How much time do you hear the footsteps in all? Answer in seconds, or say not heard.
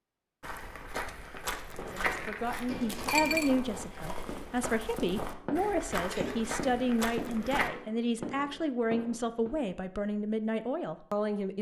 7 s.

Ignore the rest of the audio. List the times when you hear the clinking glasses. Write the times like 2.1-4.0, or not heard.
2.7-3.5.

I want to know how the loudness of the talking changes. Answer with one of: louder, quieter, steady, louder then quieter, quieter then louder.
steady.